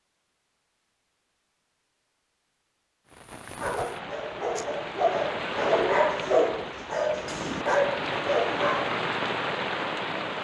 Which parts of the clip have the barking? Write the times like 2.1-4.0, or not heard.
3.6-9.0.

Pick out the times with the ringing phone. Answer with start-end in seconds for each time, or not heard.
not heard.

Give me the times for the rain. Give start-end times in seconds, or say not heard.
3.0-10.3.